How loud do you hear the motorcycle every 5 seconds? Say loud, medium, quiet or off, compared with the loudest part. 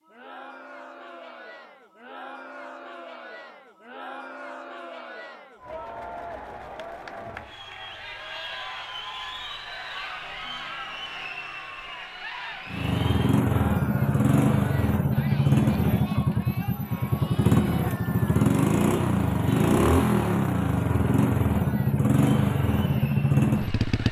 off, off, loud, loud, loud.